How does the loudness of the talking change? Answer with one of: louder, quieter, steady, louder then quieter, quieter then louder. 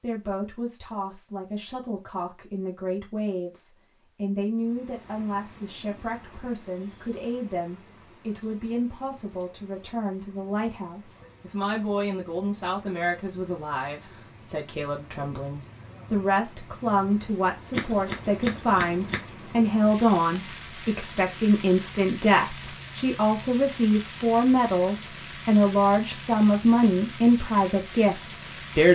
louder.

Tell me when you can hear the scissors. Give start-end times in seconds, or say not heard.
17.7-19.2.